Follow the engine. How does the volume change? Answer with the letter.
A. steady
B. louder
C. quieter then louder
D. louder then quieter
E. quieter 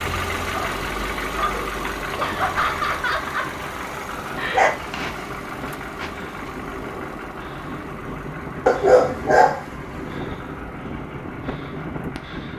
E.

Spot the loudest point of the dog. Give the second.
9 s.